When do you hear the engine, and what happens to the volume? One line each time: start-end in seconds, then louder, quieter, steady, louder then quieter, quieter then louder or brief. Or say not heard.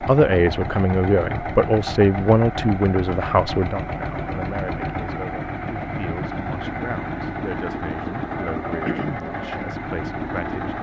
0.0-10.7 steady.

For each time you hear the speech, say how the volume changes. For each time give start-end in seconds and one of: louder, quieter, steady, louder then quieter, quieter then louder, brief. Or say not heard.
0.0-10.7 quieter.